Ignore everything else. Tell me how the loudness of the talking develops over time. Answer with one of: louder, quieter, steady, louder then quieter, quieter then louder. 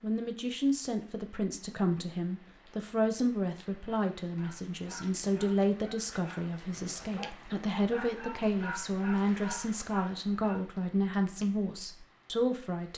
steady.